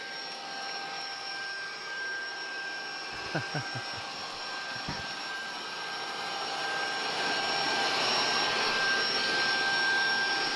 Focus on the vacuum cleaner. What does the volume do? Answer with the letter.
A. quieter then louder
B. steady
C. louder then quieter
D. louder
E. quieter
D.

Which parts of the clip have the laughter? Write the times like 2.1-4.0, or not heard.
3.1-5.2.